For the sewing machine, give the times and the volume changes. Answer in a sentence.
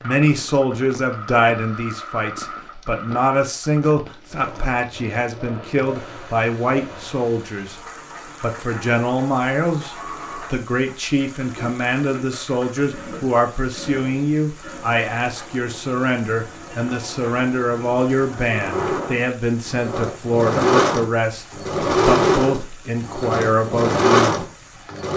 You can hear the sewing machine from 0.0 to 25.1 s, getting louder.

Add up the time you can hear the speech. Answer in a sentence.
The speech can be heard for 24 seconds in total.